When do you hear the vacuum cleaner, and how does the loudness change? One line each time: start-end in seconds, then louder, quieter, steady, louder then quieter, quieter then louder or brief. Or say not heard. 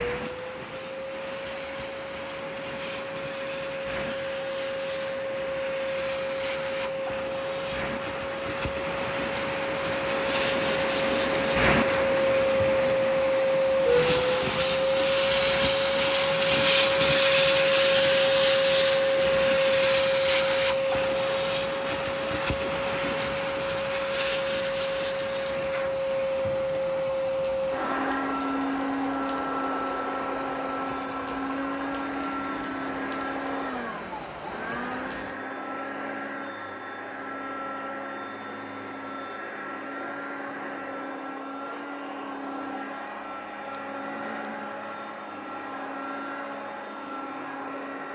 0.0-48.0 louder then quieter.